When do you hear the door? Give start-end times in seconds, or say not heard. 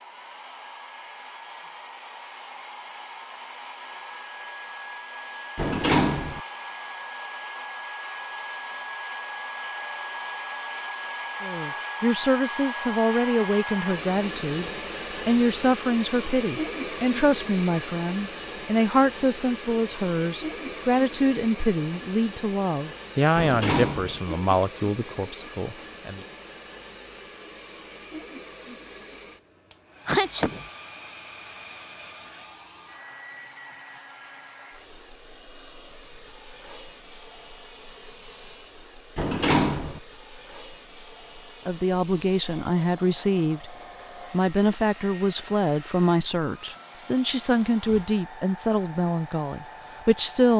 5.5-6.4, 23.4-24.2, 39.1-40.0.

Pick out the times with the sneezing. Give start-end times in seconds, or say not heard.
30.1-30.6.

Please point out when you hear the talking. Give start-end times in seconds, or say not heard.
11.4-26.2, 41.5-50.5.